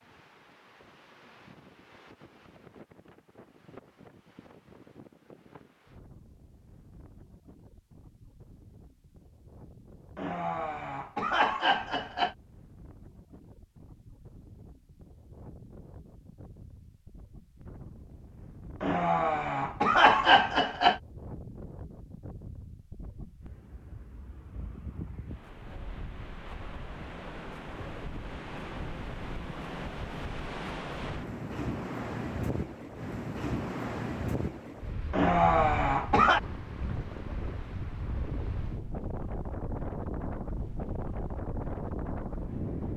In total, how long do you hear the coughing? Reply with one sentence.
You can hear the coughing for 6 seconds altogether.